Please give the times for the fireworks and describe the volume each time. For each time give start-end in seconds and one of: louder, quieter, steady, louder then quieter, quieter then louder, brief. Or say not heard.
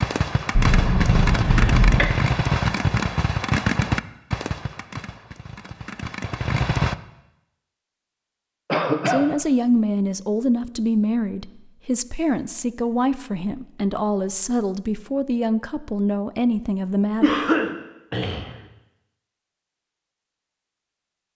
0.0-7.0 quieter.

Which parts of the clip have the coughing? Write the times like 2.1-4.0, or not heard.
0.6-2.1, 8.7-9.2, 17.2-18.6.